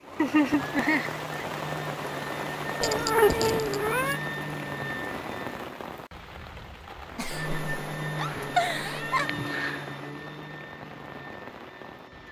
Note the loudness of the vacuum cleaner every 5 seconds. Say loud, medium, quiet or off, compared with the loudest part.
loud, loud, medium.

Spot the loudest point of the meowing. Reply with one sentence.
The loudest moment of the meowing is at 3 seconds.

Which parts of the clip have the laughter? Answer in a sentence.
The laughter can be heard from 0.1 to 1.4 s and from 7.2 to 9.2 s.